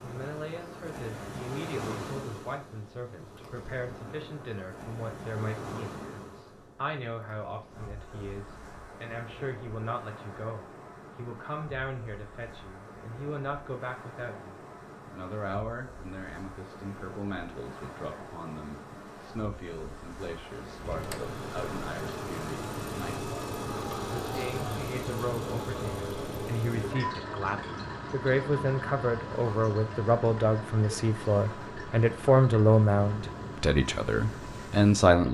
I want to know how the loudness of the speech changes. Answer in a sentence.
The loudness of the speech goes up.